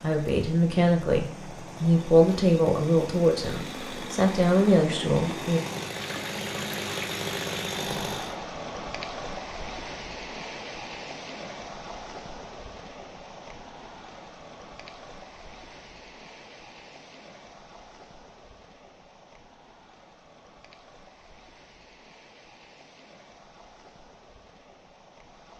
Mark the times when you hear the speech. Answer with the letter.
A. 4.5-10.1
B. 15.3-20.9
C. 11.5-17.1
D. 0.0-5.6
D.